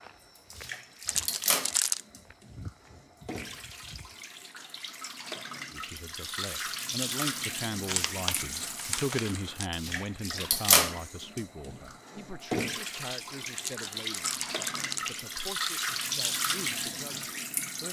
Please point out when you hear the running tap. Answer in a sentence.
You can hear the running tap from 0.0 to 17.8 s.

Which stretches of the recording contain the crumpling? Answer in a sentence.
The crumpling can be heard from 1.1 to 2.0 s, from 7.8 to 9.7 s and from 13.6 to 15.2 s.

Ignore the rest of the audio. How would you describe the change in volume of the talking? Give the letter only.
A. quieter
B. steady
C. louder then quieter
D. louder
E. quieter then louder
A.